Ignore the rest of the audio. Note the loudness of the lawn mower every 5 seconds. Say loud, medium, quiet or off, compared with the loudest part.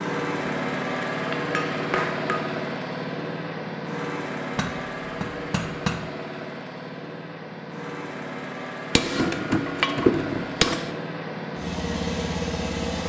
loud, medium, loud.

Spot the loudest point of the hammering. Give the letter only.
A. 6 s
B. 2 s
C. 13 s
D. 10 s
D.